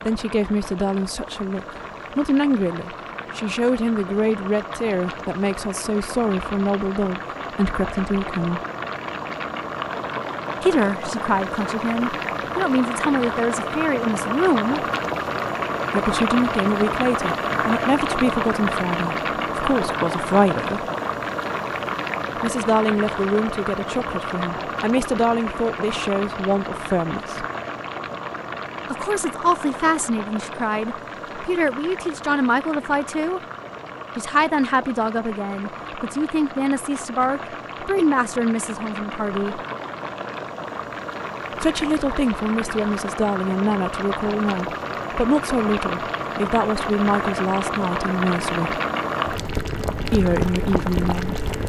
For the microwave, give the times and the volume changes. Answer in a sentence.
You can't hear the microwave here.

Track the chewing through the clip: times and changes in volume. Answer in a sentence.
You can't hear the chewing here.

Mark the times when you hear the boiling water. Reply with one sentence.
The boiling water can be heard from 0.0 to 51.6 s.